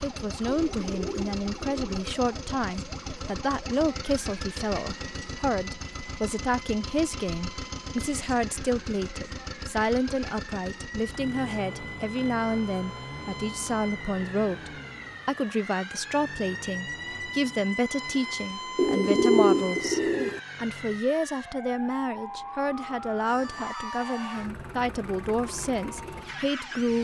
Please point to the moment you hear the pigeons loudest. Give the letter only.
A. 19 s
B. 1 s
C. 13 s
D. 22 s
A.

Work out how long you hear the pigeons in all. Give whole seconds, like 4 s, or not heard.
3 s.